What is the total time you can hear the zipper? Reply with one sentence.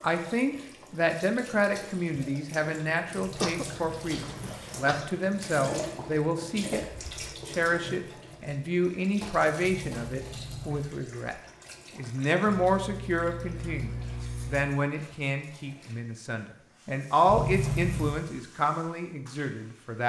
You can hear the zipper for 4 seconds altogether.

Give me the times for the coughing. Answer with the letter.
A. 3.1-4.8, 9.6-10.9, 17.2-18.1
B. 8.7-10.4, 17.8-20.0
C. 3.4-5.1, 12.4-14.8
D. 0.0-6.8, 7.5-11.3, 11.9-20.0
C.